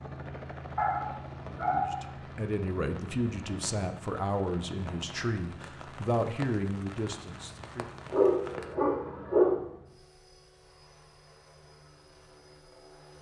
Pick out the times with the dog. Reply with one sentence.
The dog can be heard from 0.8 to 2.0 s and from 8.1 to 9.6 s.